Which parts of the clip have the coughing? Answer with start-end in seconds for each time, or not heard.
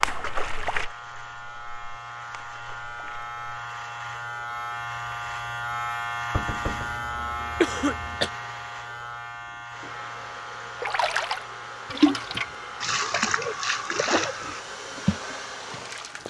7.6-8.3.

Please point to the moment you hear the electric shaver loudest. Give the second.
6 s.